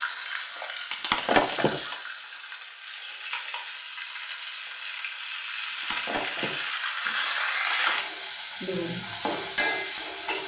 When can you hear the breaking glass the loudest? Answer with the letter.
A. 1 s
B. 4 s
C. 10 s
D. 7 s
A.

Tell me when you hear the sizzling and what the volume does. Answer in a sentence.
The sizzling can be heard from 0.0 to 10.4 s, getting louder.